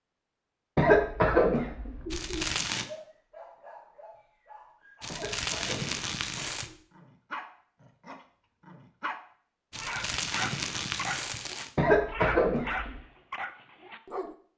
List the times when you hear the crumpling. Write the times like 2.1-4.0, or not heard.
2.1-2.9, 5.0-6.7, 9.7-11.7.